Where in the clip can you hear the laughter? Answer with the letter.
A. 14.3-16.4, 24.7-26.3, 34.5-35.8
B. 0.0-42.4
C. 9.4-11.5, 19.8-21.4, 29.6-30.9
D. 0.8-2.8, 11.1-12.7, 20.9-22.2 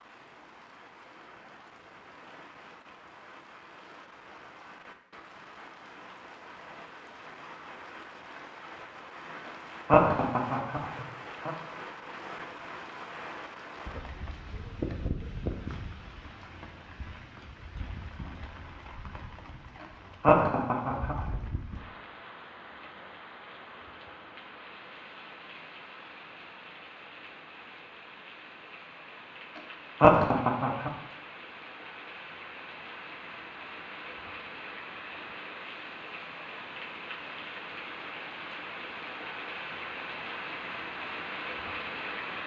C.